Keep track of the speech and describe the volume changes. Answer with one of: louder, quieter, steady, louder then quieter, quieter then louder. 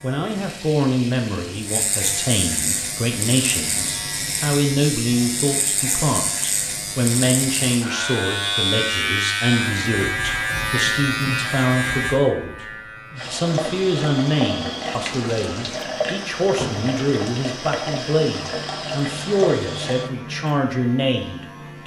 steady.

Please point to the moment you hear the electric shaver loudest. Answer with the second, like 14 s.
9 s.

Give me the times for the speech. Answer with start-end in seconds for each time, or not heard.
0.0-12.7, 13.3-21.8.